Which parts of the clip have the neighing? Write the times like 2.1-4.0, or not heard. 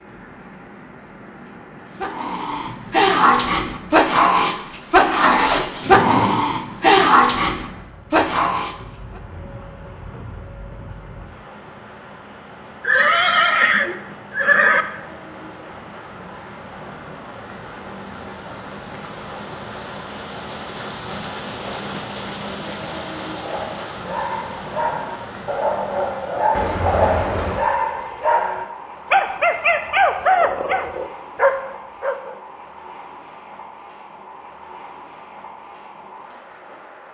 5.8-6.5, 12.8-14.8, 26.5-27.6.